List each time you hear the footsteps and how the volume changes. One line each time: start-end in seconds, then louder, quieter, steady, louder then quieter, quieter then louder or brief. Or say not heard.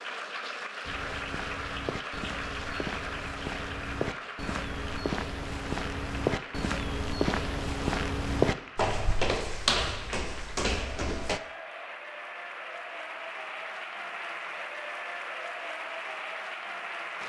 0.8-11.4 louder.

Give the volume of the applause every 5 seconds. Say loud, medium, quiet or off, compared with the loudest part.
loud, medium, loud, loud.